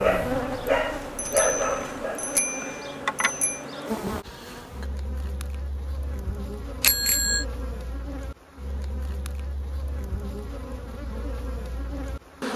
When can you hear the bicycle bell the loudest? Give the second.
7 s.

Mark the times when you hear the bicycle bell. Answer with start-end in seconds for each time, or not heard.
1.1-3.6, 6.8-7.5.